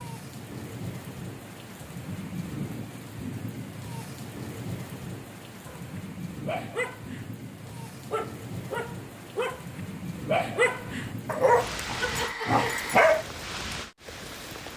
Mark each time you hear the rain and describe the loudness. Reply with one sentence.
The rain can be heard from 0.0 to 14.7 s, at a steady volume.